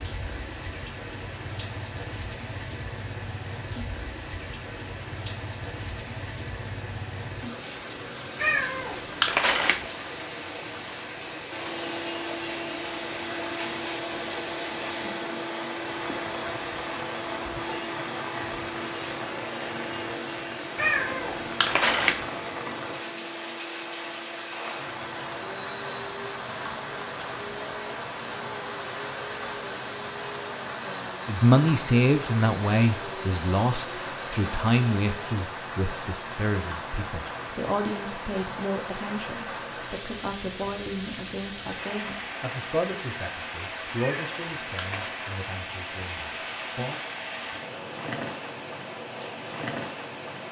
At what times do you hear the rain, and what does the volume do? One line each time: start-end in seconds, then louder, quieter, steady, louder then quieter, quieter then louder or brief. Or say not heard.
0.0-50.4 steady.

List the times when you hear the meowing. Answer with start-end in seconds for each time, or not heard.
8.4-9.9, 20.8-22.2, 44.0-45.1.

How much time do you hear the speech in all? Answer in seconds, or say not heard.
16 s.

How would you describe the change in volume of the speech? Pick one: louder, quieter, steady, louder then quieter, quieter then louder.
quieter.